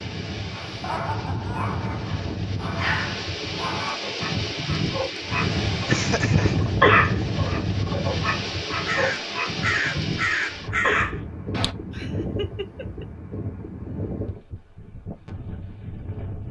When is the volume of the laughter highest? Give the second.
6 s.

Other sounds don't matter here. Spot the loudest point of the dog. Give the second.
7 s.